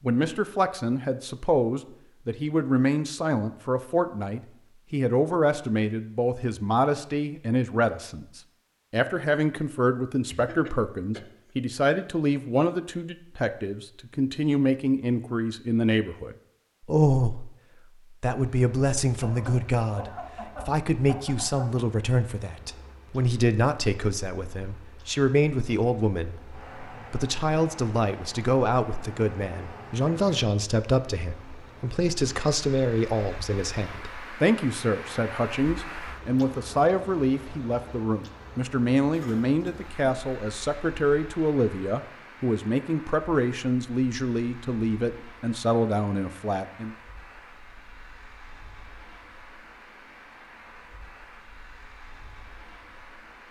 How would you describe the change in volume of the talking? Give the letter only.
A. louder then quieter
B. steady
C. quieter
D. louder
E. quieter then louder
B.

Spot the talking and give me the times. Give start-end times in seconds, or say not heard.
0.0-47.0.